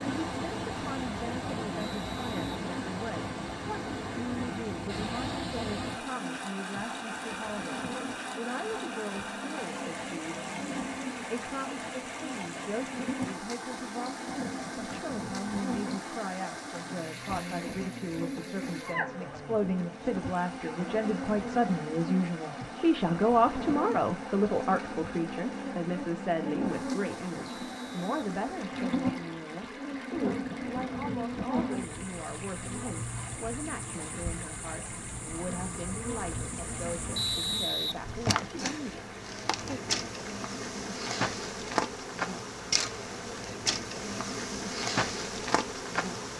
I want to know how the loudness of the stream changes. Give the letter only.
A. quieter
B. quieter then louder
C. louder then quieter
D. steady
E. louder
A.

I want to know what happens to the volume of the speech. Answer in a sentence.
The loudness of the speech goes up, then down.